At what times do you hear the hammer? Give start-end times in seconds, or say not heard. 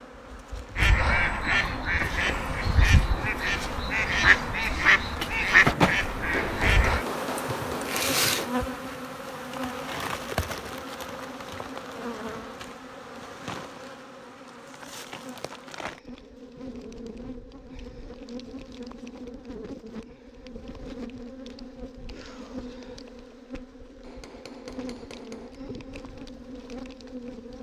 6.3-8.6, 24.0-25.6.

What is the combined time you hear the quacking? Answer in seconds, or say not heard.
6 s.